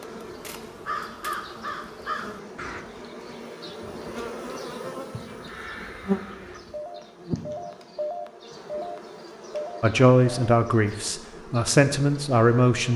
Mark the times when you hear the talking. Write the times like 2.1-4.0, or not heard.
9.8-12.9.